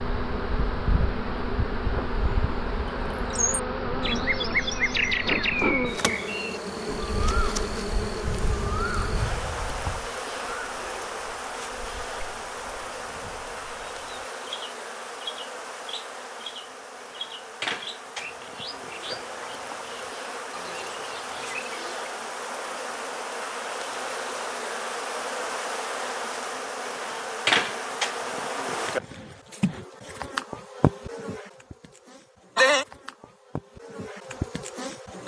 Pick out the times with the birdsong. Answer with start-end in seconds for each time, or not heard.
0.0-22.1.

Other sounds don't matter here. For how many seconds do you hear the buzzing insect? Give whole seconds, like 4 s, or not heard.
35 s.